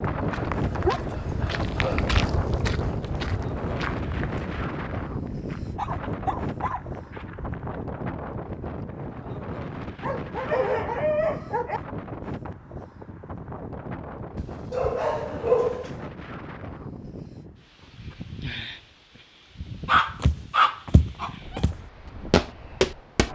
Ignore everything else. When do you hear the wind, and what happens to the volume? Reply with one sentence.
The wind can be heard from 0.0 to 23.3 s, getting quieter.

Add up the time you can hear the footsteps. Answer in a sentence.
The footsteps can be heard for 11 seconds in total.